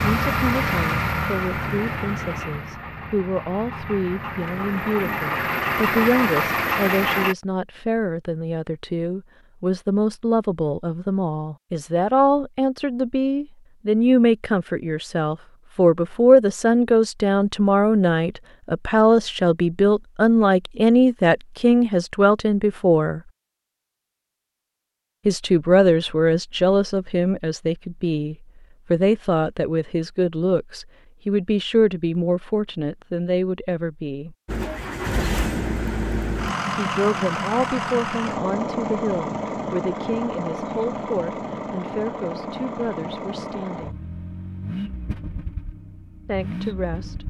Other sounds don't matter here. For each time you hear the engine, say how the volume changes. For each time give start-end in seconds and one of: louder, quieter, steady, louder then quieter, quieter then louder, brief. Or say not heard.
0.0-7.3 quieter then louder
34.5-47.2 quieter.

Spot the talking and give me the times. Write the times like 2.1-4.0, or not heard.
0.0-23.2, 25.2-34.4, 36.8-44.0, 46.2-47.2.